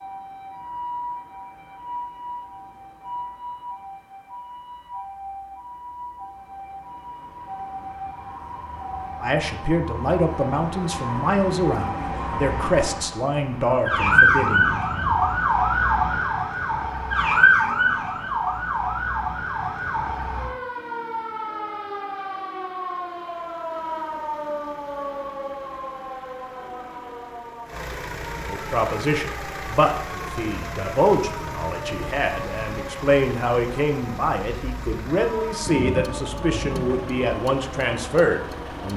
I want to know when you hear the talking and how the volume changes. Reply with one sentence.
You can hear the talking from 9.2 to 14.7 s, at a steady volume; and from 28.4 to 38.9 s, at a steady volume.